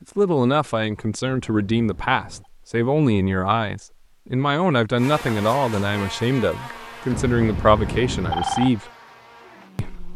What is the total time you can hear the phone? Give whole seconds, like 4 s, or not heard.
3 s.